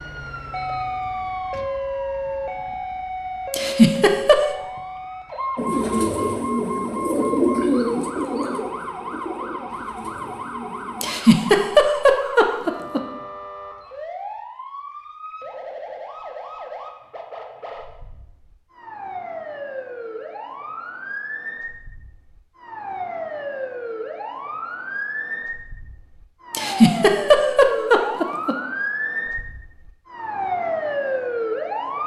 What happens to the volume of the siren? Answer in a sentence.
The loudness of the siren goes down, then up.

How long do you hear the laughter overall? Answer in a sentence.
The laughter can be heard for 5 seconds in total.